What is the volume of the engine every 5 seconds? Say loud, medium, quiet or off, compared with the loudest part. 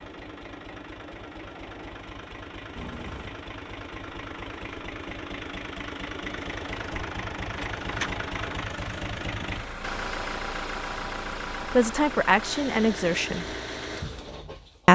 medium, loud, loud.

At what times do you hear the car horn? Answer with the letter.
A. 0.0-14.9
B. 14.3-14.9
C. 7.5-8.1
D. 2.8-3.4
D.